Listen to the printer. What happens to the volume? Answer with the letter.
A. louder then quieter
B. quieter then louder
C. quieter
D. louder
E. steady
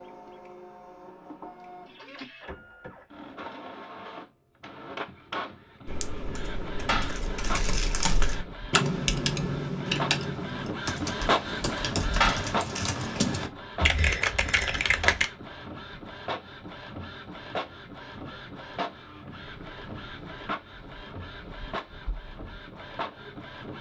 A.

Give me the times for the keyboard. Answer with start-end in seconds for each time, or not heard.
5.8-15.2.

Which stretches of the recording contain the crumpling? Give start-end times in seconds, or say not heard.
6.8-8.3, 12.2-12.9.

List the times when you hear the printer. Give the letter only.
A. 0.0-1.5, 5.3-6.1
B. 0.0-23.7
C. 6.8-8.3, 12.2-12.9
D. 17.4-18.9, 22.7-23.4
B.